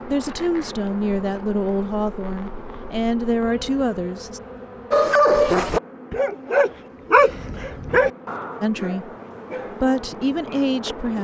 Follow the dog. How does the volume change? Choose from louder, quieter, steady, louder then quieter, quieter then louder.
quieter.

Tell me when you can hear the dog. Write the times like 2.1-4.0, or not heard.
4.9-10.7.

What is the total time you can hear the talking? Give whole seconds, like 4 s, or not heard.
6 s.